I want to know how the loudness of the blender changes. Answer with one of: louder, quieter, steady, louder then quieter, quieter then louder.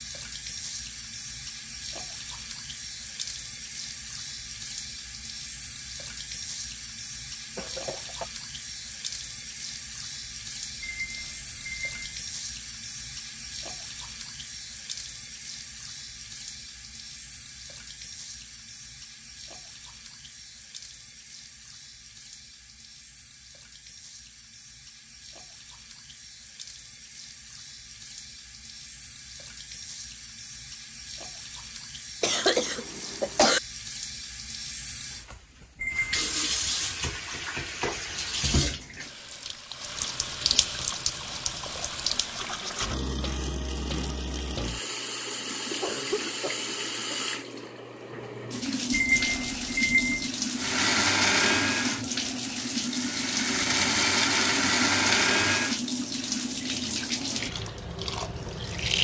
quieter then louder.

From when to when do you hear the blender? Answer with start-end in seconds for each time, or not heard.
50.5-55.8.